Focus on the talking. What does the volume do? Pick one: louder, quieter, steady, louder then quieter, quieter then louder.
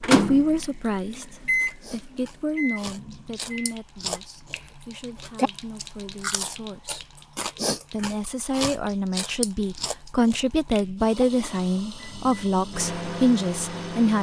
quieter then louder.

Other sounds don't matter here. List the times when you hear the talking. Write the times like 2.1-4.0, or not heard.
0.1-7.0, 7.9-14.1.